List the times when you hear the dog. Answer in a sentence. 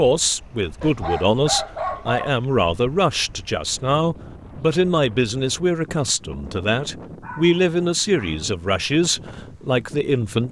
The dog can be heard from 0.8 to 2.4 s and from 7.2 to 8.4 s.